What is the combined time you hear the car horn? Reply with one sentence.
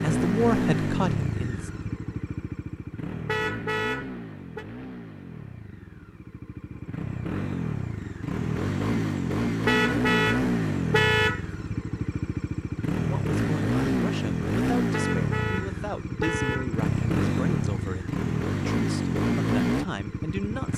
You can hear the car horn for 5 seconds altogether.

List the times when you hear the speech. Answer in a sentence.
The speech can be heard from 0.0 to 1.7 s and from 13.0 to 20.7 s.